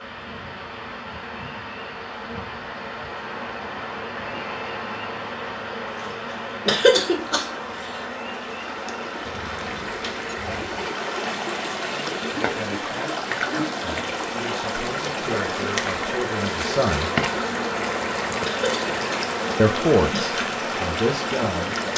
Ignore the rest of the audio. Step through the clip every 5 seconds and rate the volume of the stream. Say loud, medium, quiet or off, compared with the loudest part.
quiet, medium, loud, loud, loud.